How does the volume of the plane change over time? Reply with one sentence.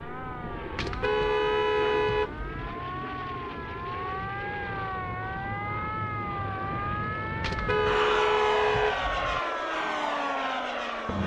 The volume of the plane goes up.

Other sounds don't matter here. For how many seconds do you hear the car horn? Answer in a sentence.
The car horn can be heard for 4 seconds in total.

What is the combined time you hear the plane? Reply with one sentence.
The plane can be heard for 11 seconds in total.